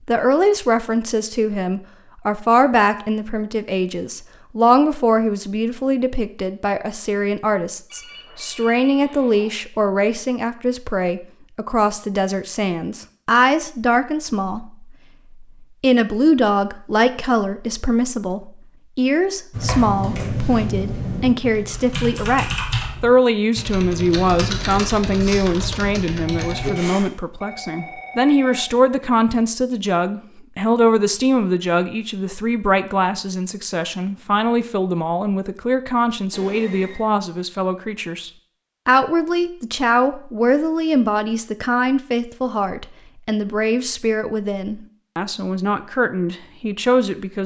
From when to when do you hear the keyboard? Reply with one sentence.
You can hear the keyboard from 19.5 to 27.1 s.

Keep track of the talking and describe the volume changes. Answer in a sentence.
The loudness of the talking stays about the same.